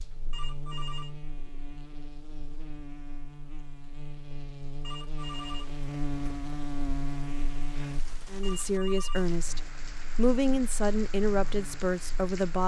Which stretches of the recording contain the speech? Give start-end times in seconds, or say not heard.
8.3-12.6.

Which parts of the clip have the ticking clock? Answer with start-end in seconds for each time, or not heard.
not heard.